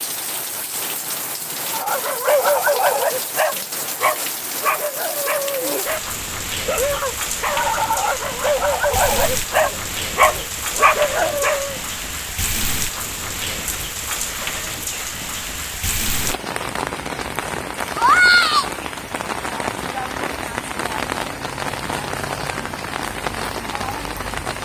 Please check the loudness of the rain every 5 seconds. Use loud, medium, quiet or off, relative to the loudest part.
medium, medium, medium, loud, medium.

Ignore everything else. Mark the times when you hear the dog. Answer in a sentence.
You can hear the dog from 1.7 to 11.8 s.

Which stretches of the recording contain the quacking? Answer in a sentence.
The quacking can't be heard in this clip.